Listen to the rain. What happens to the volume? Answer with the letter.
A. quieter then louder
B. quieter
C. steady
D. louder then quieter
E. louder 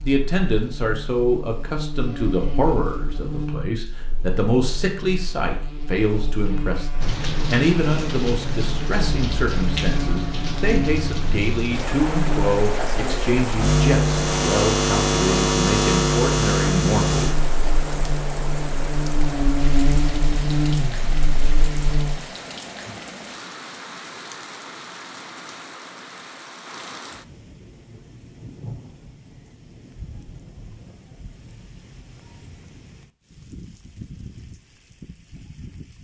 B.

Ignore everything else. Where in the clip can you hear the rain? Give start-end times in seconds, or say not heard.
7.0-35.9.